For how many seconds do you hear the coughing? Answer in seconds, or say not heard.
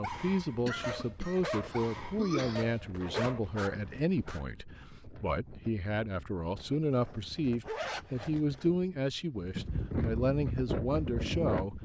2 s.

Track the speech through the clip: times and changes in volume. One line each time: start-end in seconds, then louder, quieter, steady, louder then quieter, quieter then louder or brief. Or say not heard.
0.0-11.8 steady.